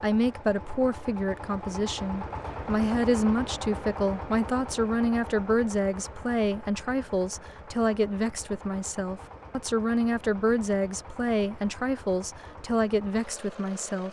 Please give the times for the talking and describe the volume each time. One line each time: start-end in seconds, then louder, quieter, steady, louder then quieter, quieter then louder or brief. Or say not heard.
0.0-14.0 steady.